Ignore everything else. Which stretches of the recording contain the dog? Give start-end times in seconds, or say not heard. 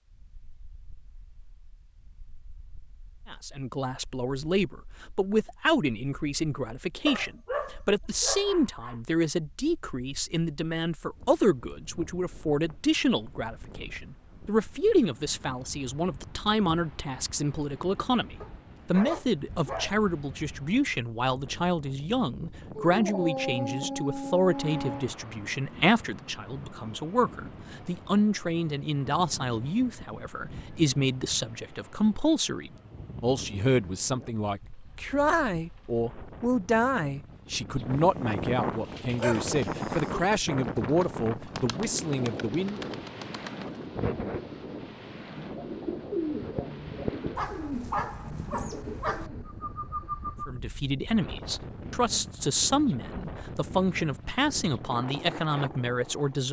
7.0-8.9, 18.4-19.9, 22.8-25.1, 39.1-40.0, 47.4-49.3.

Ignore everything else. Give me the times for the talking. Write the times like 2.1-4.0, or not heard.
3.3-42.9, 50.5-56.4.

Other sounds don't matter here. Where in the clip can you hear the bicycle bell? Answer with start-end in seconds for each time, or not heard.
not heard.